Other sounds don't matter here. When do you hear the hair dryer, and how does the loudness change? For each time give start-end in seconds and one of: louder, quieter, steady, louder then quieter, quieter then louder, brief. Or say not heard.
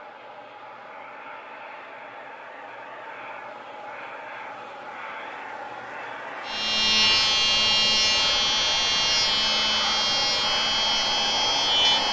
0.0-12.0 louder.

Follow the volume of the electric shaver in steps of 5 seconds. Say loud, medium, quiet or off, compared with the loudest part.
off, loud, loud.